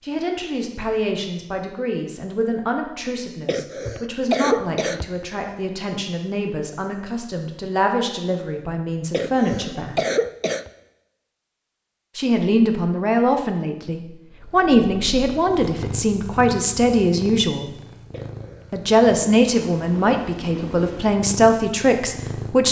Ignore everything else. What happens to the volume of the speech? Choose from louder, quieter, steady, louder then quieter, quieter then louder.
louder.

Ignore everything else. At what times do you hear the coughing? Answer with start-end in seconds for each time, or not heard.
3.5-5.2, 9.1-10.7, 18.1-18.7.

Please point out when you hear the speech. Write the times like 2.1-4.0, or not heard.
0.0-10.1, 12.2-17.7, 18.7-22.6.